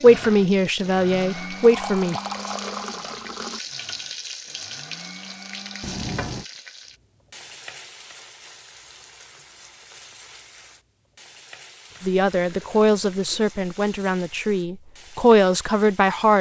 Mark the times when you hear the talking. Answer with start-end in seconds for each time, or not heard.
0.0-2.1, 12.0-16.3.